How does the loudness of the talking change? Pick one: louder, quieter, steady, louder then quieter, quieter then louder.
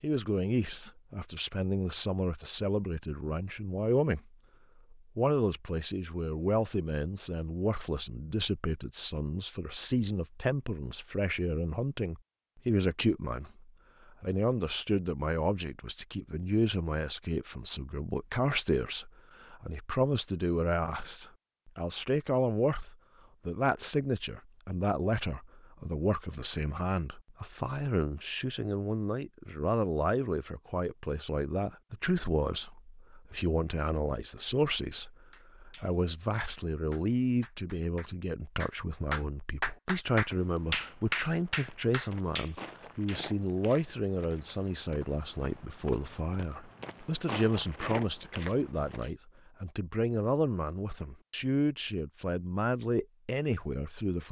steady.